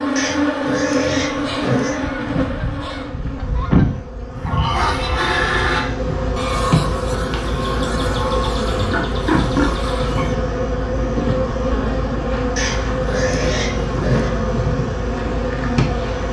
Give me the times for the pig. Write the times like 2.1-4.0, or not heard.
0.1-2.0, 4.5-6.2, 8.8-10.3, 12.6-14.3.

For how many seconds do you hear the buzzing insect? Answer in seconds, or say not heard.
16 s.